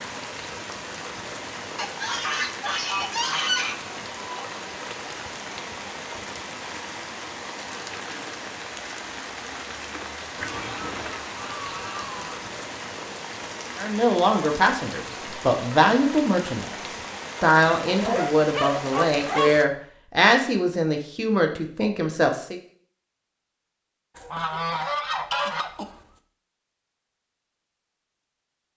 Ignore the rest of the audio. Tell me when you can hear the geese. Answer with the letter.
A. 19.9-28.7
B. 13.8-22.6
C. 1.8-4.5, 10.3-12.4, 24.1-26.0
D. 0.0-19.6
C.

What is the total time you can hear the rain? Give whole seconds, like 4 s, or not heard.
20 s.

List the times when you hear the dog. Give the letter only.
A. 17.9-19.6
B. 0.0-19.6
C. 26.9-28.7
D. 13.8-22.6
A.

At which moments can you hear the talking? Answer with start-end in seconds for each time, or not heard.
13.8-22.6.